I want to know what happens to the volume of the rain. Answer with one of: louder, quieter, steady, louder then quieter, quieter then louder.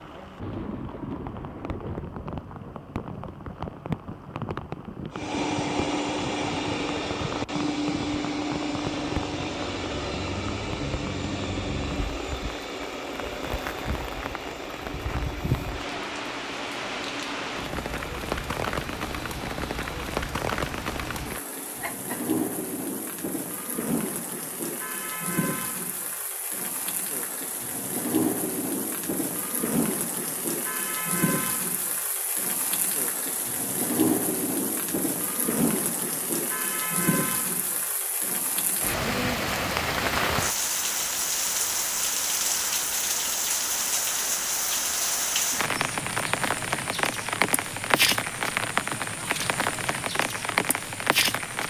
louder.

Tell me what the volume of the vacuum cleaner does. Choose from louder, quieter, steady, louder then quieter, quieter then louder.
quieter.